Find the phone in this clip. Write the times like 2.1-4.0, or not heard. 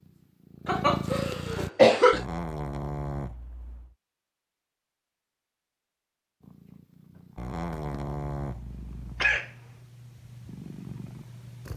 not heard.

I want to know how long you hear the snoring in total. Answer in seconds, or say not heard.
4 s.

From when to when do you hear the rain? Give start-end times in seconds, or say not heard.
not heard.